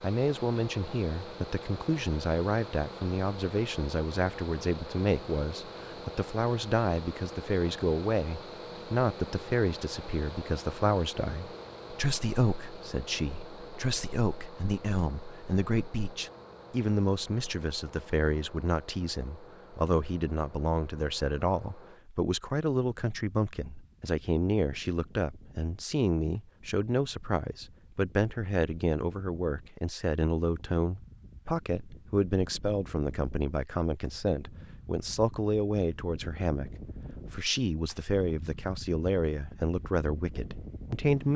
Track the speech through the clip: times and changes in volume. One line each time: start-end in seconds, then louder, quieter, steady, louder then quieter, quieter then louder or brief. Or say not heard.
0.0-41.3 steady.